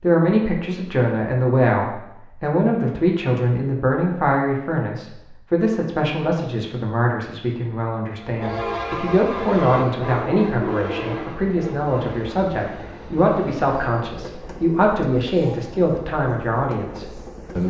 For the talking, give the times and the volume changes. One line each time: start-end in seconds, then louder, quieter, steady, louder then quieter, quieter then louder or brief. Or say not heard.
0.0-17.6 steady.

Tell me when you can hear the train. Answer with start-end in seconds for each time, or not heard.
8.2-17.6.